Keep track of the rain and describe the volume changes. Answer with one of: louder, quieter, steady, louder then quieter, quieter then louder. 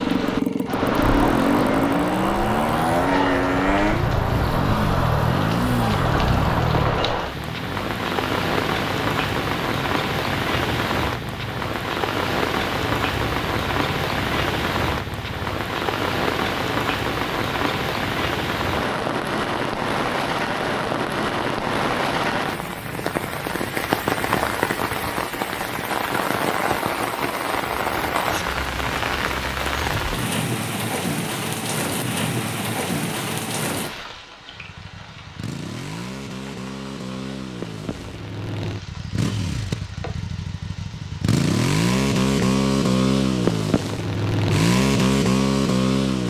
quieter.